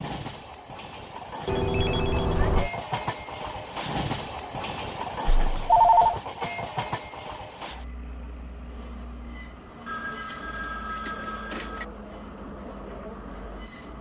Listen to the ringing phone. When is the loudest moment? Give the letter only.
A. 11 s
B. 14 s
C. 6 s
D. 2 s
C.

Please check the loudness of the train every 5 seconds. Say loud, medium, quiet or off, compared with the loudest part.
loud, loud, medium.